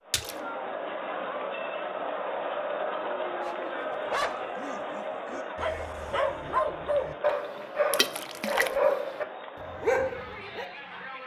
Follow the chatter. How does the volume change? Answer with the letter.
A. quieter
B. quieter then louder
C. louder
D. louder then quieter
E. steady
A.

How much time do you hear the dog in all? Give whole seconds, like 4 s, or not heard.
7 s.